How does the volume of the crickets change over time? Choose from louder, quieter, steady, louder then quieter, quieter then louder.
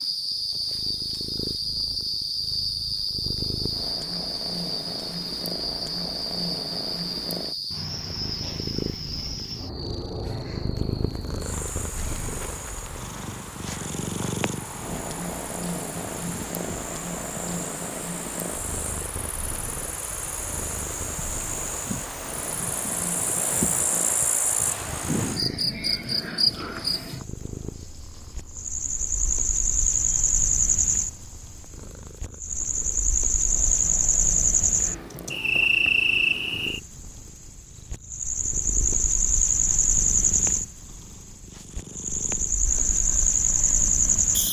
quieter then louder.